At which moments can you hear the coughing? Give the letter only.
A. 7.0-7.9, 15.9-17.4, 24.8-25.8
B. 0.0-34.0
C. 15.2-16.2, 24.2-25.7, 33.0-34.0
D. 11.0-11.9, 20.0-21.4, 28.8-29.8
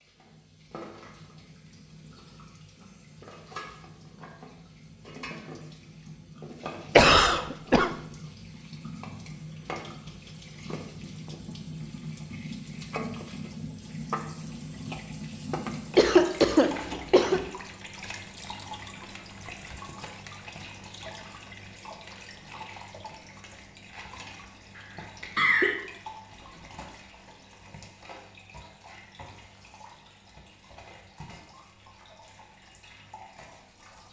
A.